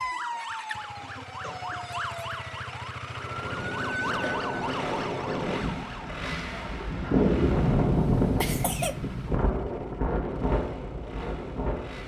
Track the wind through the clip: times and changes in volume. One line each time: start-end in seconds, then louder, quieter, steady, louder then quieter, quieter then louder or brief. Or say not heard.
3.0-12.0 louder then quieter.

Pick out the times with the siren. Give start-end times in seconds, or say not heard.
0.0-6.1.